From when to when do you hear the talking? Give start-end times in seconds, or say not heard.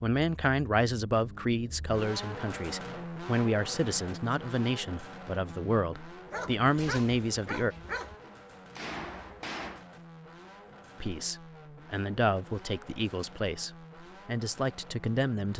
0.0-7.8, 11.0-15.5.